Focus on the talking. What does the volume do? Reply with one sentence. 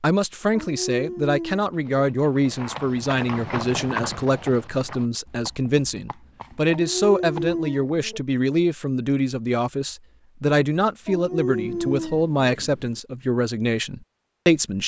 The loudness of the talking stays about the same.